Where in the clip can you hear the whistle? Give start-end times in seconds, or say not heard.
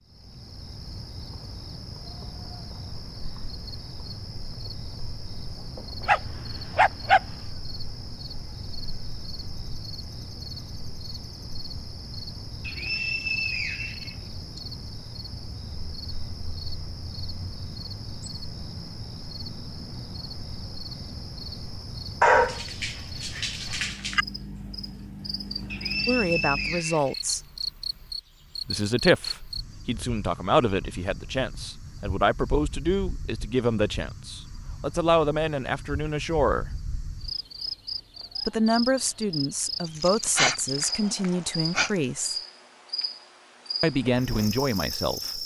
12.7-14.6, 25.7-27.6.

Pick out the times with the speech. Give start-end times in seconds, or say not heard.
26.1-27.4, 28.6-36.7, 38.5-42.4, 43.8-45.4.